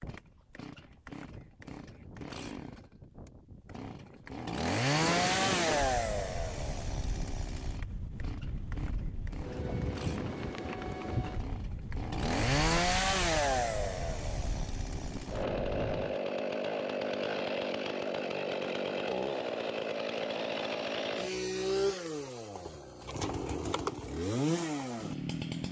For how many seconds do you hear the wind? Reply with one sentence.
You can hear the wind for 16 seconds altogether.